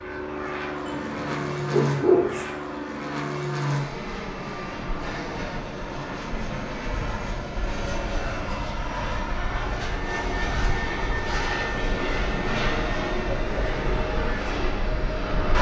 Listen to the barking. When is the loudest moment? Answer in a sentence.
The loudest moment of the barking is at 2 seconds.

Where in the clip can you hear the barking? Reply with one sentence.
The barking can be heard from 0.8 to 2.5 s.